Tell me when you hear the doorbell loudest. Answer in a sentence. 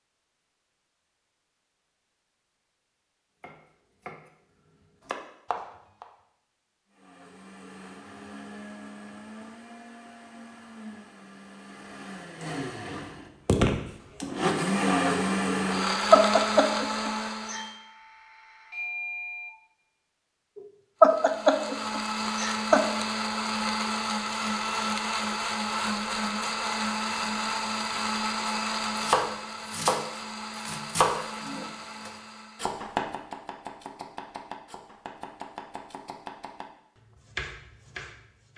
The volume of the doorbell peaks at 19 seconds.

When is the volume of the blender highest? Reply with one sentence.
The volume of the blender peaks at 15 seconds.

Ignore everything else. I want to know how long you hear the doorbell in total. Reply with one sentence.
The doorbell can be heard for 2 seconds in total.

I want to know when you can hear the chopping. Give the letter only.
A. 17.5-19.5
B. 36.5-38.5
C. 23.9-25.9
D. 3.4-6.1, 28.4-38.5
D.